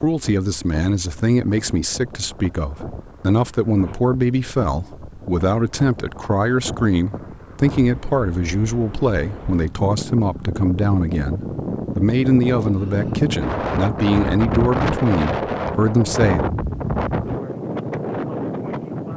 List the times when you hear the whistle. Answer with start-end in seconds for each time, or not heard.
not heard.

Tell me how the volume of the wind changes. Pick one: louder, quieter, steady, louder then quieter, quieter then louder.
louder.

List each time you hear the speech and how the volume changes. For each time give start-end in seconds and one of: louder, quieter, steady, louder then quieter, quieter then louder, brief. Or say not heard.
0.0-16.4 steady.